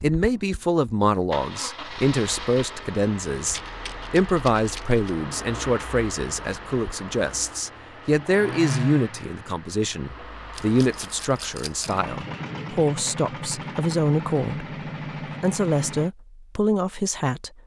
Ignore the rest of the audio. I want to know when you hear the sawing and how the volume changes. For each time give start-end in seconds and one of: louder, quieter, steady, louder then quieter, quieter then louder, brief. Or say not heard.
not heard.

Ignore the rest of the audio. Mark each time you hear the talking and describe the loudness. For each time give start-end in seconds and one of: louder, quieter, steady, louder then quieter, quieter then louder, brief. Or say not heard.
0.0-14.8 steady
15.4-17.5 brief.